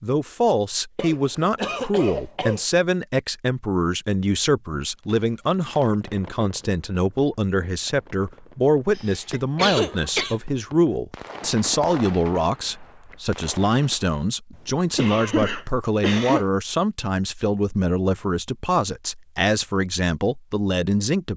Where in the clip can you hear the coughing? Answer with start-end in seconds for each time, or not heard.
0.9-2.6, 8.9-10.3, 14.5-16.4.